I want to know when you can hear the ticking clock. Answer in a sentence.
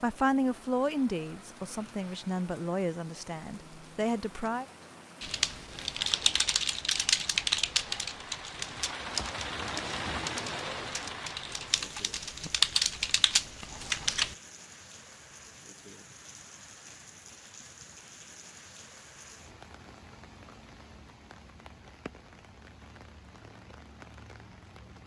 The ticking clock can't be heard in this clip.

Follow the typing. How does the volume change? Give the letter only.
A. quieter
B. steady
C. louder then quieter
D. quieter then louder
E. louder
D.